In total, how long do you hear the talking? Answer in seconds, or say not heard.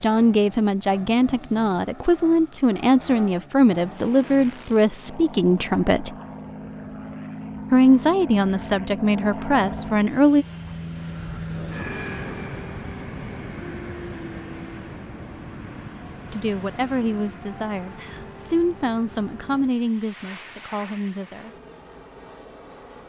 14 s.